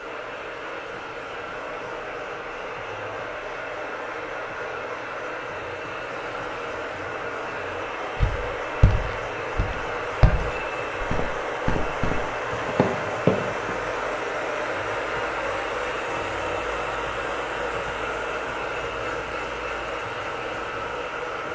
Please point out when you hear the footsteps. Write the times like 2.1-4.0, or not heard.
8.2-13.8.